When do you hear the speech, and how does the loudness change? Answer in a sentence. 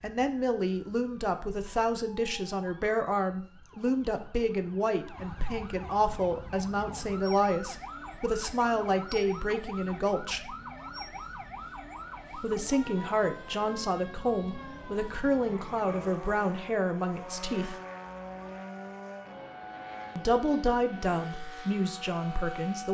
The speech can be heard from 0.0 to 10.6 s, at a steady volume; from 12.3 to 17.8 s, at a steady volume; and briefly from 20.1 to 22.8 s.